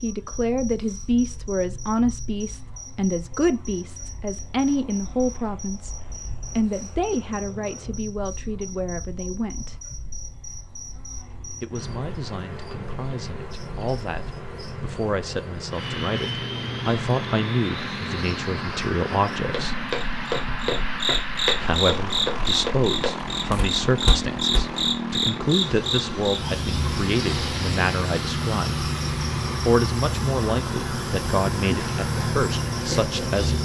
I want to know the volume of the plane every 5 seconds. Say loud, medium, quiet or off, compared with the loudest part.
quiet, quiet, quiet, loud, loud, loud, loud.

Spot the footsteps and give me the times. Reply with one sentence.
The footsteps can be heard from 19.4 to 25.0 s.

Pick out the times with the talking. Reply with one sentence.
The talking can be heard from 0.0 to 6.0 s, from 6.5 to 9.8 s, from 11.6 to 19.8 s, from 21.6 to 28.9 s and from 29.6 to 33.6 s.